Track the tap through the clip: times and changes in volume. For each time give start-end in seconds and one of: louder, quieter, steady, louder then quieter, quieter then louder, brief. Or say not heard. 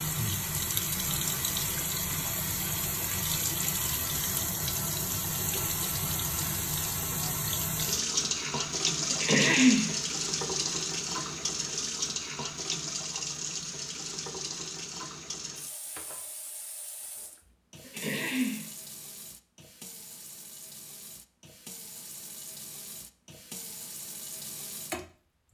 0.0-25.4 quieter.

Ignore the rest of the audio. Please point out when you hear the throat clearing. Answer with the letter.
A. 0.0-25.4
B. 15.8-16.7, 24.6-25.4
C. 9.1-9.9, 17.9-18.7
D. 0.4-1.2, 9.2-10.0
C.